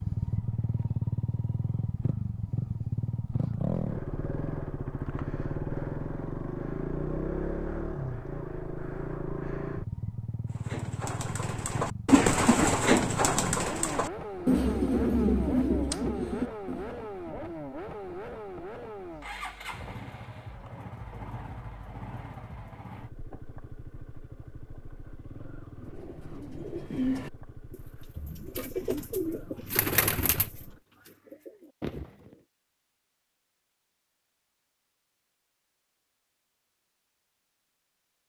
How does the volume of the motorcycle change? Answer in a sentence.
The volume of the motorcycle goes down.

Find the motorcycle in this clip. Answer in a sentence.
The motorcycle can be heard from 0.0 to 30.9 s.